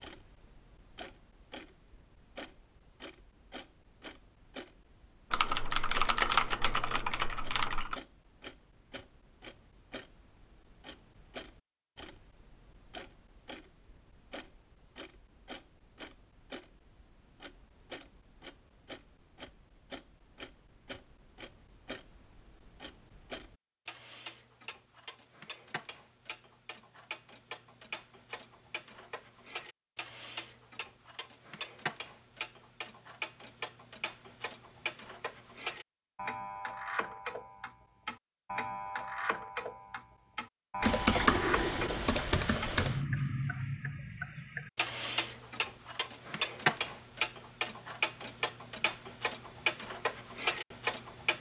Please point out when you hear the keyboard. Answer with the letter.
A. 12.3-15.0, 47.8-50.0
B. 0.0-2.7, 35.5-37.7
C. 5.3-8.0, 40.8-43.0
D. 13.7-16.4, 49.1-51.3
C.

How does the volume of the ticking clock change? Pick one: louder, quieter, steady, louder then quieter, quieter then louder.
louder.